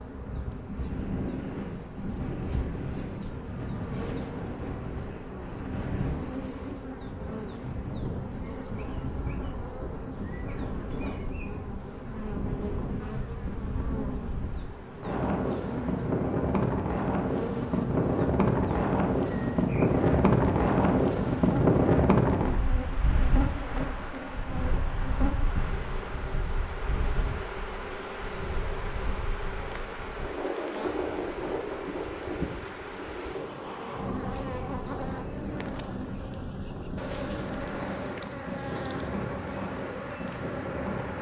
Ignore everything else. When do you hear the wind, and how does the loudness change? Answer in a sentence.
You can hear the wind from 0.0 to 41.1 s, getting louder then quieter.